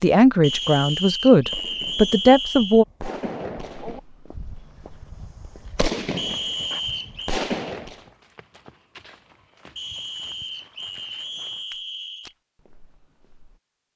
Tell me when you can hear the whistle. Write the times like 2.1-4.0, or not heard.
0.4-2.9, 6.2-7.4, 9.8-12.3.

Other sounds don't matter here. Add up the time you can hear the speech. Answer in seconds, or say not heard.
3 s.